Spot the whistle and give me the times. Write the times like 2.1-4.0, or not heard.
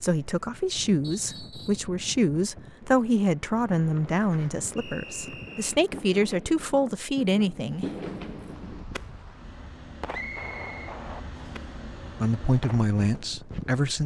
1.0-1.9, 4.8-5.8, 10.1-11.6.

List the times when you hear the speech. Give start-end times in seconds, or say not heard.
0.0-7.8, 12.2-14.0.